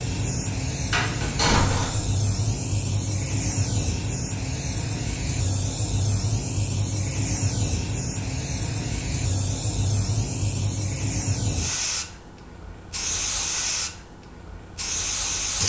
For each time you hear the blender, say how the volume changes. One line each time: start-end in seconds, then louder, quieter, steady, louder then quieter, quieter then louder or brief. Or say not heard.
not heard.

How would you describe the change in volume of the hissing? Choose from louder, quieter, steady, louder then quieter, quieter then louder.
steady.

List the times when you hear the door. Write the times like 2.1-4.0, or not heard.
0.9-2.0.